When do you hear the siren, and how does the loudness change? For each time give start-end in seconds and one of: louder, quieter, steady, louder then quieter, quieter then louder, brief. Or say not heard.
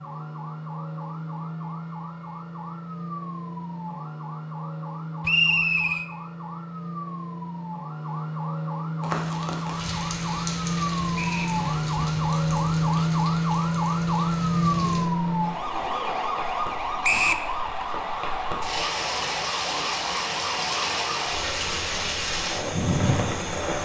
0.0-23.8 louder then quieter.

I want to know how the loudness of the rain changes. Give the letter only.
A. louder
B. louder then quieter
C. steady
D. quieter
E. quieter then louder
E.